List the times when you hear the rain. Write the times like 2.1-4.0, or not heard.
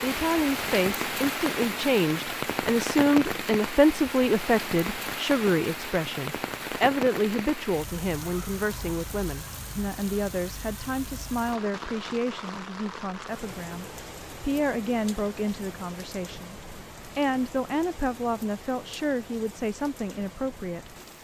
0.0-21.1.